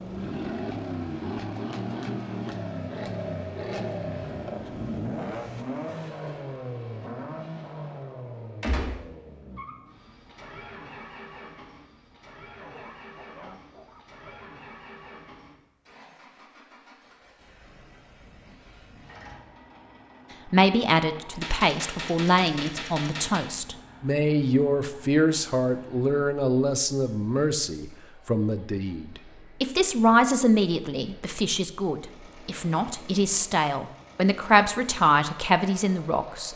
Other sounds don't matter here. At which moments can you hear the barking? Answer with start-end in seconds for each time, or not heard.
12.6-14.5.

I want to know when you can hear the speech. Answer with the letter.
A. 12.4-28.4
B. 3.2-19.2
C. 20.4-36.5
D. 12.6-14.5
C.